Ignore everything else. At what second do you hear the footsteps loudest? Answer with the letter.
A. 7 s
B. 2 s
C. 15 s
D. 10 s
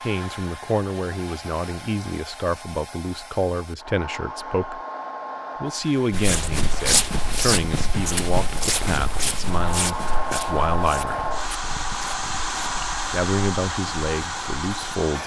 A.